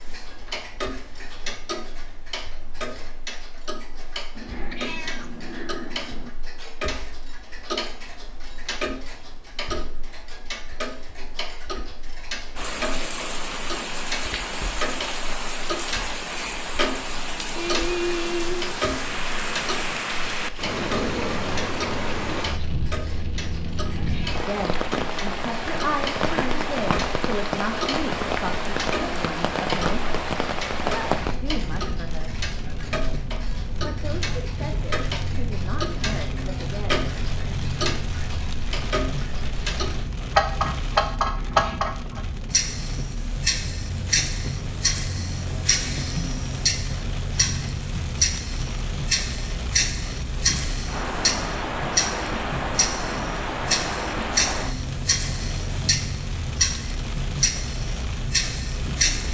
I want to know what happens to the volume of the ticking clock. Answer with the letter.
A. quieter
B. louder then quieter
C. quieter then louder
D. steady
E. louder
E.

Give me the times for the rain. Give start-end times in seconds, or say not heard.
12.6-59.2.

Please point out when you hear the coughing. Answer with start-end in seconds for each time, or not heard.
not heard.